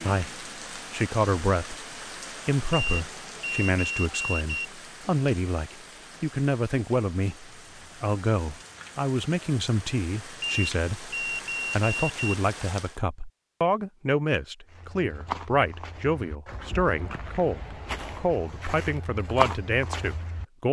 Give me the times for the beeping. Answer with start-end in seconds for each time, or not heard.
2.7-4.7, 10.4-12.3.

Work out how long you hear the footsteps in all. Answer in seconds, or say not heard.
6 s.